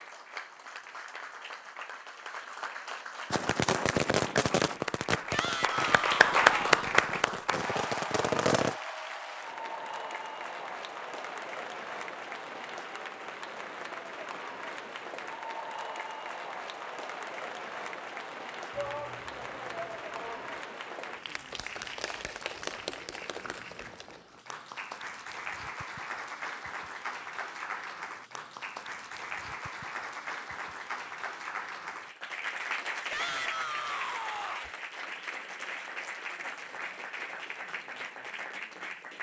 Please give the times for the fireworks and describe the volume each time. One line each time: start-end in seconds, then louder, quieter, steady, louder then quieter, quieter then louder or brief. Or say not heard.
3.3-8.8 quieter then louder.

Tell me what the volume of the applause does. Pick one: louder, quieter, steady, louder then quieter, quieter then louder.
quieter.